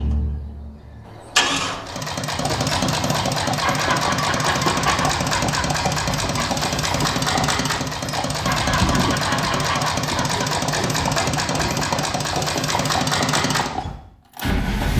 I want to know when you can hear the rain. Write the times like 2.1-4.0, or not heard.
not heard.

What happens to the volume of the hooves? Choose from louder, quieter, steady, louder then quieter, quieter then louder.
steady.